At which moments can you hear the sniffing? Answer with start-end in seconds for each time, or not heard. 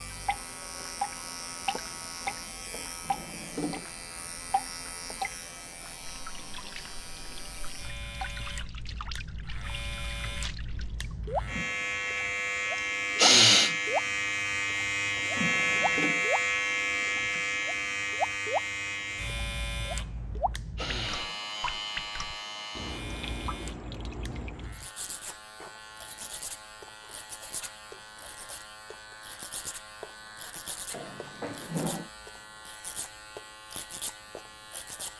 13.2-13.8, 20.8-21.4.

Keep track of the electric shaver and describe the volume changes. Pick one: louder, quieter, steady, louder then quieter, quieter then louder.
louder then quieter.